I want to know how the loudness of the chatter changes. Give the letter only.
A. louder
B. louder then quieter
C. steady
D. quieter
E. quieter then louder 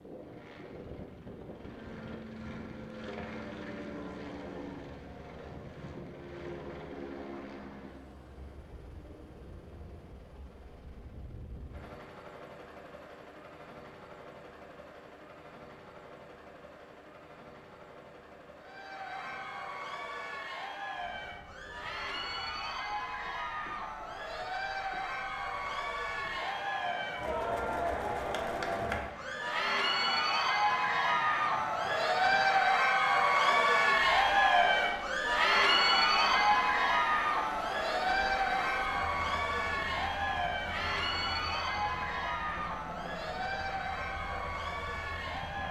B.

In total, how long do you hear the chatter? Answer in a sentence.
You can hear the chatter for 27 seconds altogether.